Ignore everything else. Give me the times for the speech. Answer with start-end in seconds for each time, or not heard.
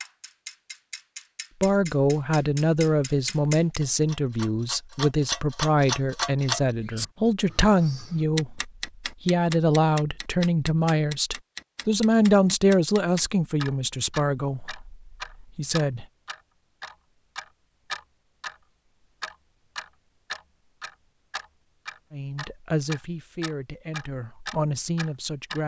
1.6-16.1, 22.1-25.6.